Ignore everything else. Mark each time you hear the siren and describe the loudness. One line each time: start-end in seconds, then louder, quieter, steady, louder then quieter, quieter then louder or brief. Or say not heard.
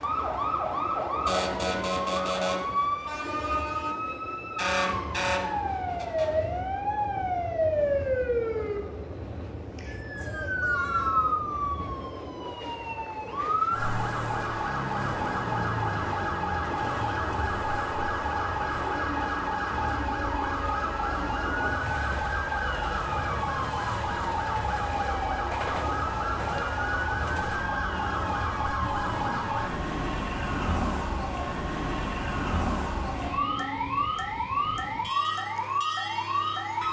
0.0-36.8 steady.